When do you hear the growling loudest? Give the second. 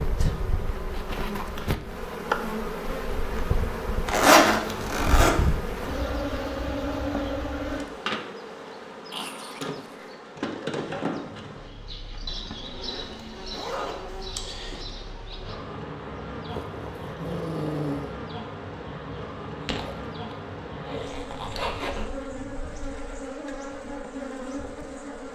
18 s.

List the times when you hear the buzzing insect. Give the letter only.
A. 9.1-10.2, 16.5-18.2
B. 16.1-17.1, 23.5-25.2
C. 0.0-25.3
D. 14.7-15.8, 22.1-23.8
C.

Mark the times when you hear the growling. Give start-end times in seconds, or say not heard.
9.1-10.2, 16.5-18.2.